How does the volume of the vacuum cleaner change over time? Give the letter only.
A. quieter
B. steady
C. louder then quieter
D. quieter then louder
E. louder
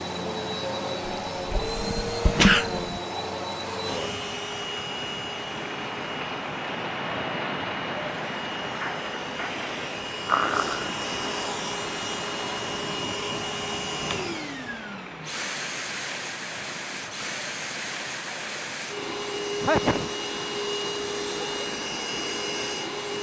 D.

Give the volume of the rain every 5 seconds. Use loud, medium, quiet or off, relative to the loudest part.
medium, loud, medium, medium, medium.